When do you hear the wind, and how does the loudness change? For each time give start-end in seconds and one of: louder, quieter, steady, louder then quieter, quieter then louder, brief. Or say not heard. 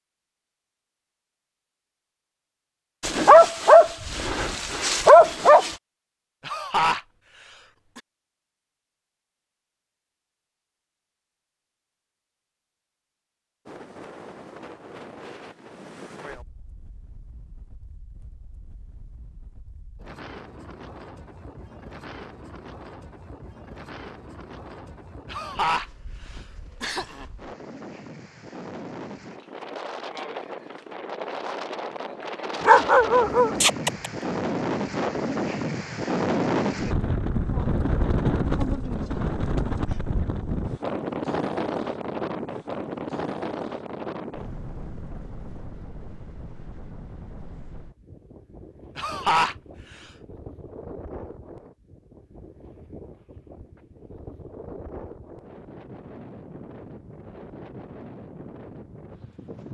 13.7-59.6 louder then quieter.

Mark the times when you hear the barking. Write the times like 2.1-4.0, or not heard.
3.0-5.8, 32.6-34.1.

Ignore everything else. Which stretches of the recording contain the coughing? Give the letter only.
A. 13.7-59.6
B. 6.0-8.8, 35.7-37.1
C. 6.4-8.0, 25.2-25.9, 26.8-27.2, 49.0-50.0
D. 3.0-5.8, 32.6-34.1
C.